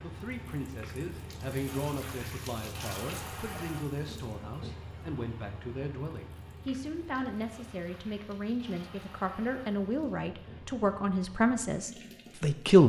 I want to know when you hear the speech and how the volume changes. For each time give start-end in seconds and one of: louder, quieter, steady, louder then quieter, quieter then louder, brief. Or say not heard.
0.0-12.8 louder.